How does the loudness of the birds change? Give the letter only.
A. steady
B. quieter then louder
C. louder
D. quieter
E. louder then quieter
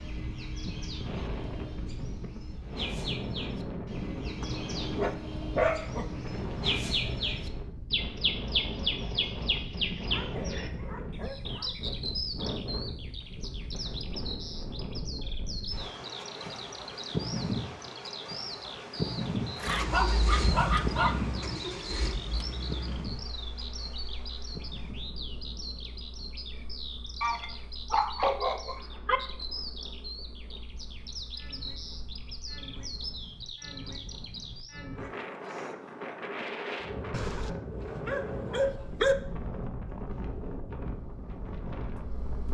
E.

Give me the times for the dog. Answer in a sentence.
You can hear the dog from 4.4 to 6.1 s, from 10.1 to 11.8 s, from 19.6 to 21.6 s, from 27.2 to 29.2 s and from 37.1 to 39.1 s.